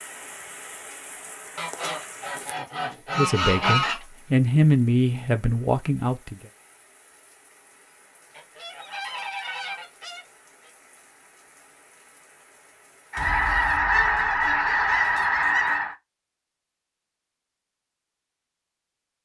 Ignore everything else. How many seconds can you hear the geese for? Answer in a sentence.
The geese can be heard for 8 seconds in total.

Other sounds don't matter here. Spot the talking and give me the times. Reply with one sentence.
You can hear the talking from 3.1 to 6.5 s.